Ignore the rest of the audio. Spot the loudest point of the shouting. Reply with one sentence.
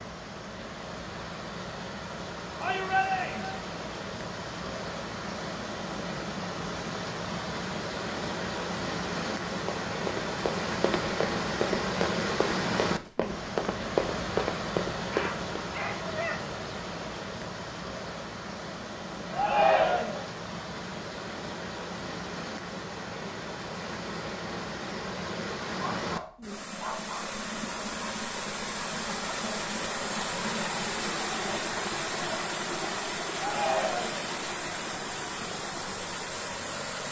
The loudest moment of the shouting is at 20 seconds.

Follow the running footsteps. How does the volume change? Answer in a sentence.
The volume of the running footsteps goes up.